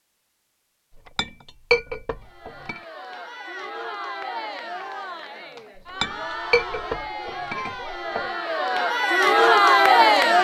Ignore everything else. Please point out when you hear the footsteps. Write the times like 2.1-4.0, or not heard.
not heard.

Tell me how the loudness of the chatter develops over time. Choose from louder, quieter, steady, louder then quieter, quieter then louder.
louder.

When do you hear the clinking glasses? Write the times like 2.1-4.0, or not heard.
0.9-2.8, 6.0-8.2.